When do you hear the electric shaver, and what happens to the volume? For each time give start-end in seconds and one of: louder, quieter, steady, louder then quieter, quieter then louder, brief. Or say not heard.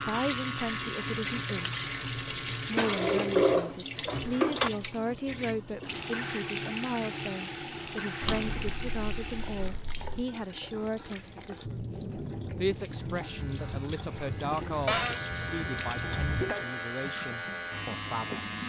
0.0-2.8 brief
13.2-18.6 louder.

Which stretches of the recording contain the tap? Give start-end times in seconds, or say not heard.
0.0-18.6.